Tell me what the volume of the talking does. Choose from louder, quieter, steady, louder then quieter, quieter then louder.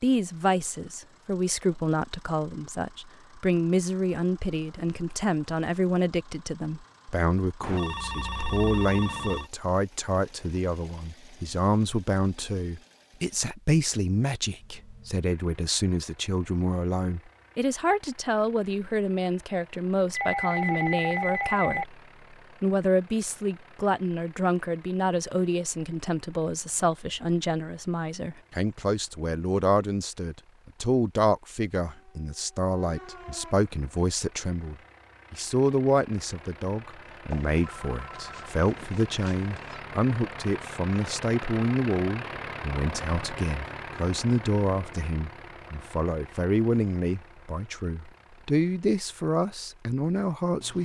steady.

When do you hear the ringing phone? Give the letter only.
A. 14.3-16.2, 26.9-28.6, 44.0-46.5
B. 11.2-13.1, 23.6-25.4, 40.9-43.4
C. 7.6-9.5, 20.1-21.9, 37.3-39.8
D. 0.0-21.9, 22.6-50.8
C.